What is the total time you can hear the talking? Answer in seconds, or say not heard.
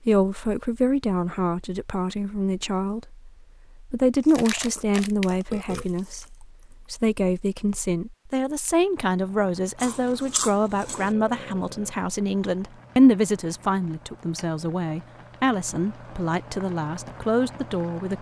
18 s.